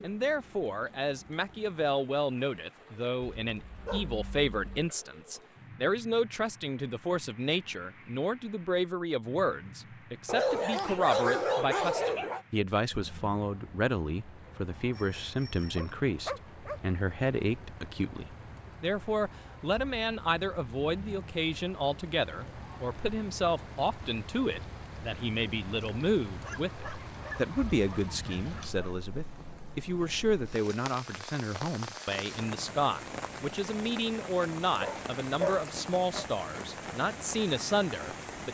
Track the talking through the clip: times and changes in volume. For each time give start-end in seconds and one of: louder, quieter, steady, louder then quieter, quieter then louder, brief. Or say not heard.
0.0-38.4 steady.